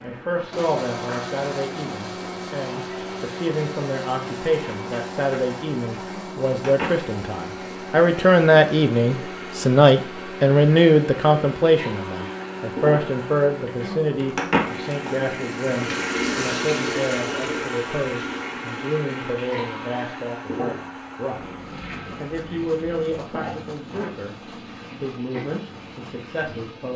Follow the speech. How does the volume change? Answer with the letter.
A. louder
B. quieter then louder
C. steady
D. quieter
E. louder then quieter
E.